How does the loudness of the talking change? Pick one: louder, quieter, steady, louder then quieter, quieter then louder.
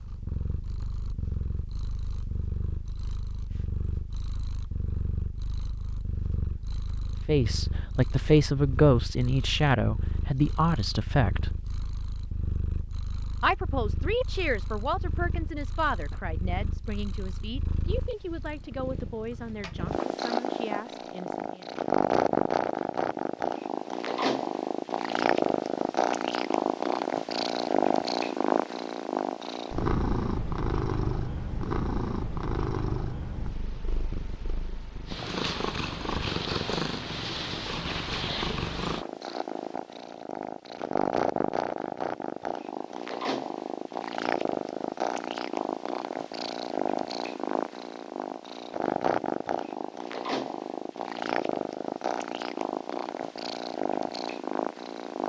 quieter.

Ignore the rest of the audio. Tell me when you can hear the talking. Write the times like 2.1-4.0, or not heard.
7.2-11.5, 13.4-21.7.